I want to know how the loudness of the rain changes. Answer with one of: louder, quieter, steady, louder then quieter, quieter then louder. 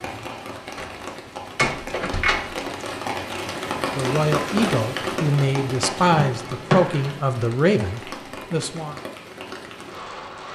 louder then quieter.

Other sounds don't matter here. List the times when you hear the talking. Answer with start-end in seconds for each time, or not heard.
4.0-8.9.